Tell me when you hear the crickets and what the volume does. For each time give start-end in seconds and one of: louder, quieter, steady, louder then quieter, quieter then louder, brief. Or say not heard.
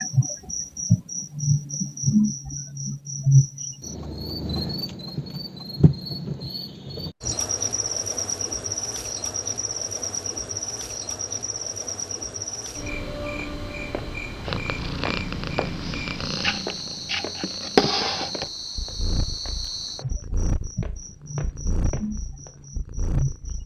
0.0-23.6 quieter.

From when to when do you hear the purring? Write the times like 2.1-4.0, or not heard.
14.4-23.6.